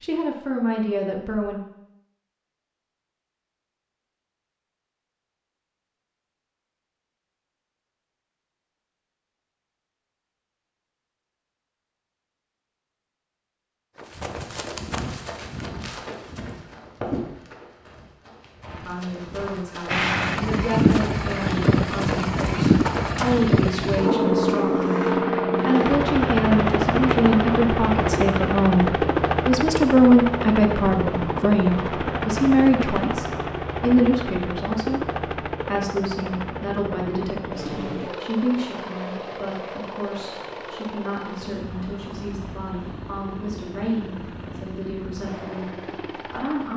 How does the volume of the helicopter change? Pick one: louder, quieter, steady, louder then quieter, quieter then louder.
quieter.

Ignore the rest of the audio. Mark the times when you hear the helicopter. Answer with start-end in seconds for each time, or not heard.
19.9-46.7.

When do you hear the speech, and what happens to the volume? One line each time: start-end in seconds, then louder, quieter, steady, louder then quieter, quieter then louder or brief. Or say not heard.
0.0-1.6 brief
18.7-46.7 louder then quieter.